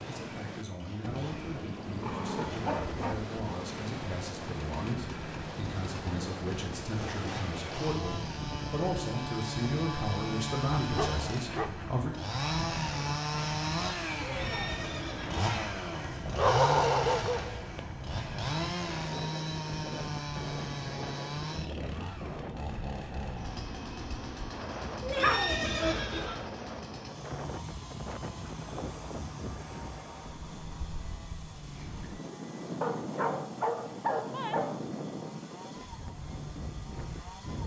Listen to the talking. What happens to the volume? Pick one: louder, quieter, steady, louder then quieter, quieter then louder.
louder.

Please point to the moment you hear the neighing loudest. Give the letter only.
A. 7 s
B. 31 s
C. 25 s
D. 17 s
C.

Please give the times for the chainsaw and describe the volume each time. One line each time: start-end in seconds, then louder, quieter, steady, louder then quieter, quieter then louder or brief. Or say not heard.
0.0-37.6 louder then quieter.